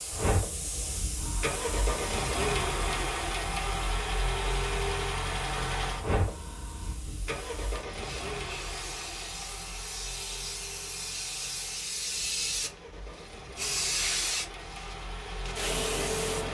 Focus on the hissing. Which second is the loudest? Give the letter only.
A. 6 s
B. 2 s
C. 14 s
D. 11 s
C.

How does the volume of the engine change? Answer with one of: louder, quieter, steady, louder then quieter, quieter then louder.
quieter then louder.